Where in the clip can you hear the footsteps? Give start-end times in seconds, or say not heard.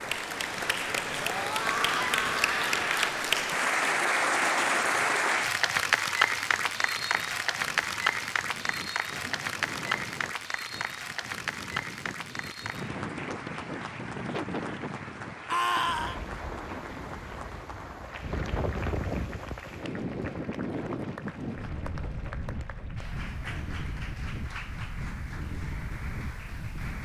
not heard.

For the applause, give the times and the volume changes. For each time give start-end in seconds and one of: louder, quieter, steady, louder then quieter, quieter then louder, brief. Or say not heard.
0.0-27.0 quieter.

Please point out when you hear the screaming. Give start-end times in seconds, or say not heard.
1.3-3.0, 15.5-16.2.